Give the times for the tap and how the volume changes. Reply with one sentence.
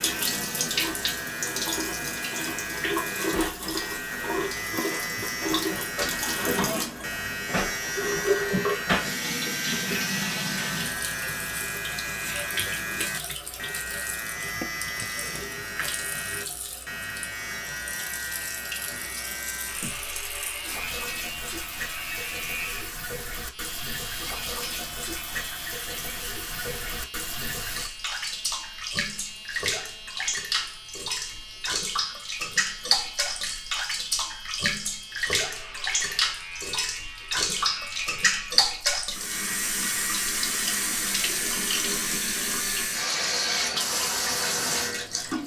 You can hear the tap from 0.0 to 45.4 s, getting quieter then louder.